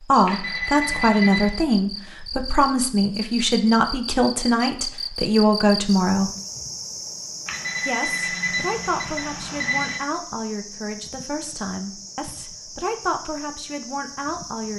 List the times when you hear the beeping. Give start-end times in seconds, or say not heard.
0.2-1.6, 7.5-10.1.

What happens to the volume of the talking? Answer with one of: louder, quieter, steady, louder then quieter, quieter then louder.
quieter.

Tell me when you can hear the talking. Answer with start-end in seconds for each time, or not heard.
0.1-6.3, 7.8-14.7.